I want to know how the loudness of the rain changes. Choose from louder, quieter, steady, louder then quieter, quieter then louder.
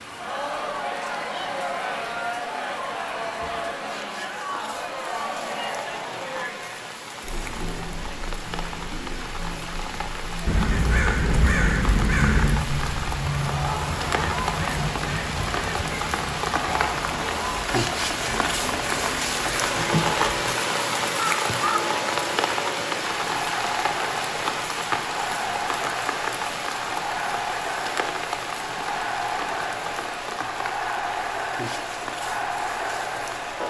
louder then quieter.